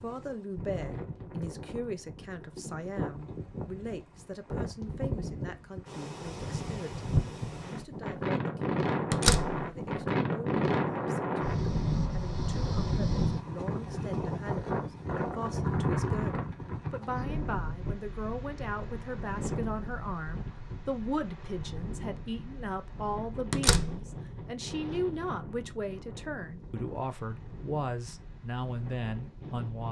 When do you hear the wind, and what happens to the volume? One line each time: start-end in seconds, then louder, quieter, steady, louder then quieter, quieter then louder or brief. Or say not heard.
0.0-29.8 louder then quieter.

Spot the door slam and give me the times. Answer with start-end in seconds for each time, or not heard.
9.1-9.7, 23.5-24.1.